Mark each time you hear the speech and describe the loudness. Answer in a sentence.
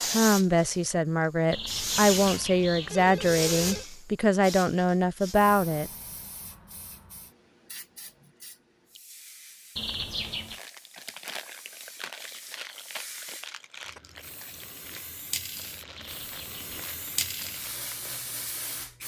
The speech can be heard from 0.1 to 5.9 s, at a steady volume.